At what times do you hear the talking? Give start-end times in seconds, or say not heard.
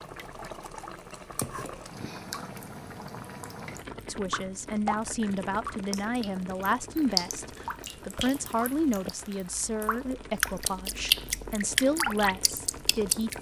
4.0-13.3.